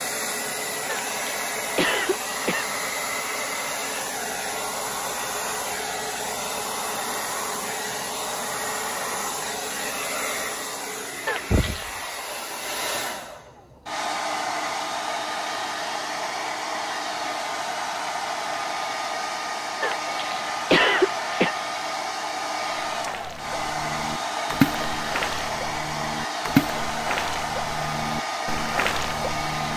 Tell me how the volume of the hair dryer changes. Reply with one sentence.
The loudness of the hair dryer stays about the same.